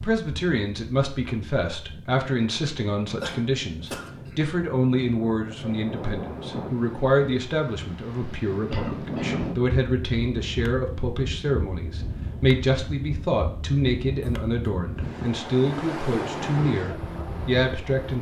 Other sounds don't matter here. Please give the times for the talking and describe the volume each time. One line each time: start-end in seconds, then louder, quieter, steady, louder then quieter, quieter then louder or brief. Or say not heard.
0.0-18.1 steady.